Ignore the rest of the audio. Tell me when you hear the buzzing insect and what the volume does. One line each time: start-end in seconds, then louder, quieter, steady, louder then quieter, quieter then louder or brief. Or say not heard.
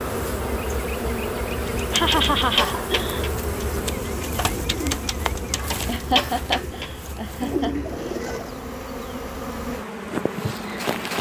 0.0-11.1 quieter then louder.